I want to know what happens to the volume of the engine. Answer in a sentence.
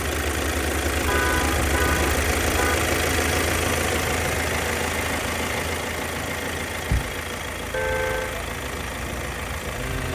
The loudness of the engine goes down.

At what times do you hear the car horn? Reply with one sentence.
You can hear the car horn from 0.9 to 2.8 s and from 7.7 to 8.4 s.